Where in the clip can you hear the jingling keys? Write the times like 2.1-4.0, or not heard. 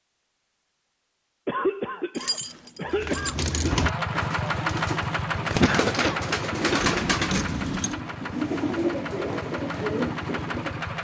2.1-3.7, 6.8-8.0.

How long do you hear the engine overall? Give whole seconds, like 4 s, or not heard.
7 s.